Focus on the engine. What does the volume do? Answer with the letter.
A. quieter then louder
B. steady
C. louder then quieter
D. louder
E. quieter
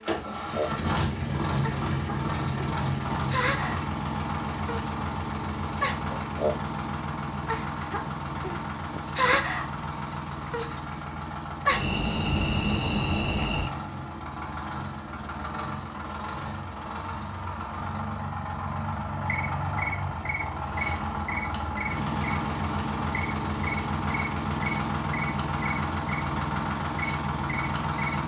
A.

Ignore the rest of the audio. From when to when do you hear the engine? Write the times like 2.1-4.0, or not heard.
0.0-28.2.